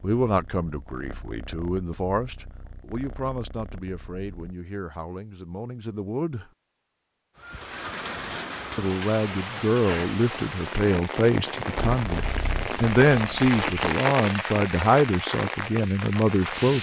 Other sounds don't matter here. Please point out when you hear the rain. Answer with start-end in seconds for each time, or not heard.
7.3-16.7.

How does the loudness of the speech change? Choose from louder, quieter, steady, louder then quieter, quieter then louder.
quieter then louder.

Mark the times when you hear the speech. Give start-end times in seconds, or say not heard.
0.0-6.5, 8.8-16.7.